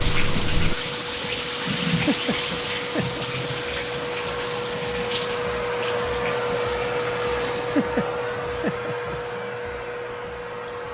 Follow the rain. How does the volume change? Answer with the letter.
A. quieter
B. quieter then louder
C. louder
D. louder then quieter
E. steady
A.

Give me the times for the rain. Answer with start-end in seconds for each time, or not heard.
0.0-7.8.